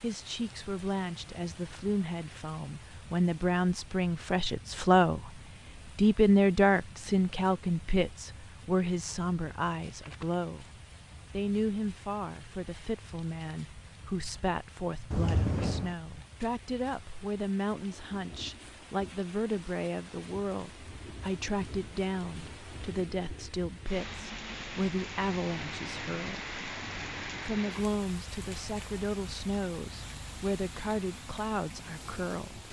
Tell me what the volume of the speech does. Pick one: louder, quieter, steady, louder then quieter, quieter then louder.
quieter.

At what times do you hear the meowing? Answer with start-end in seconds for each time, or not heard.
15.1-15.9.